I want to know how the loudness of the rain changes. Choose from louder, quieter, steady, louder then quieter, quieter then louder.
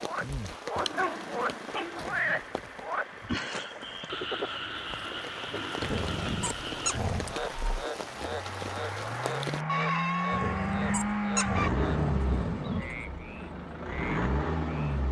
quieter then louder.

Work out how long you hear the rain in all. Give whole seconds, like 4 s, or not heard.
10 s.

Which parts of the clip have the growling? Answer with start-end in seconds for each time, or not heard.
0.8-2.4, 5.8-7.3, 10.3-13.1.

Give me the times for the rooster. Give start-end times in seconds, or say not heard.
9.7-11.7.